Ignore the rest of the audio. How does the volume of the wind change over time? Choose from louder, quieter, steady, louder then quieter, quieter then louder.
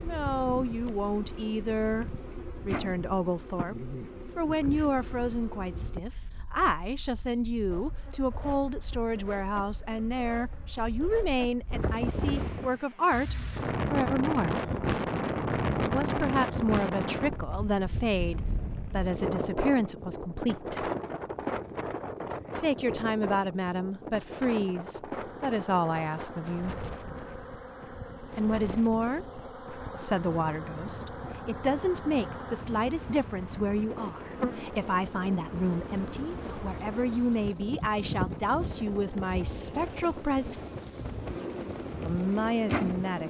louder then quieter.